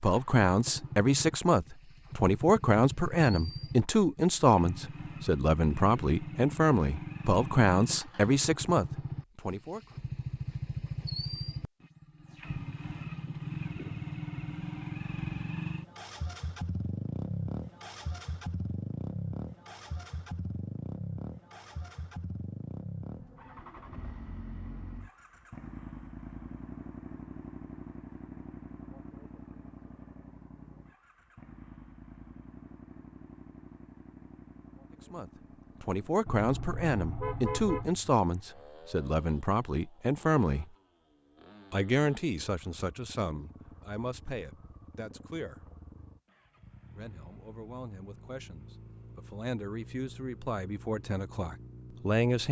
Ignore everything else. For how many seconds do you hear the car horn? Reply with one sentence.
The car horn can be heard for 2 seconds in total.